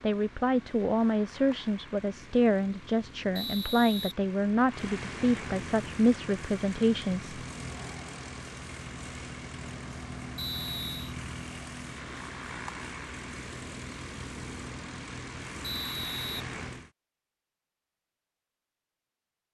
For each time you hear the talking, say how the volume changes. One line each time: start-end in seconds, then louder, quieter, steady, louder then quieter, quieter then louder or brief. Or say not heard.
0.0-7.3 steady.